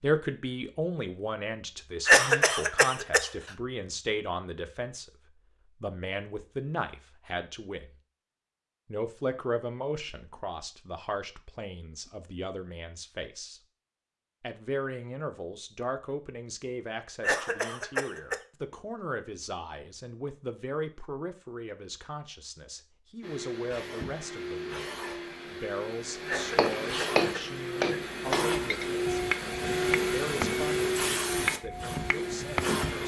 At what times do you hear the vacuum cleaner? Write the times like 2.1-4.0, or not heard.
23.2-33.0.